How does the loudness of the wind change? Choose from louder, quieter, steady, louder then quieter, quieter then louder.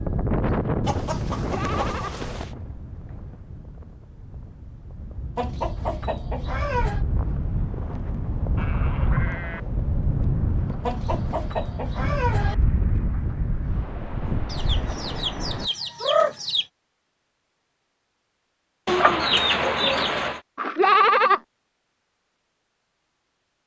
quieter then louder.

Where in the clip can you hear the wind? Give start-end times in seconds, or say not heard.
0.0-15.7.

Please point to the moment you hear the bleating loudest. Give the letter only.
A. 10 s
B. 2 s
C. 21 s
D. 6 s
C.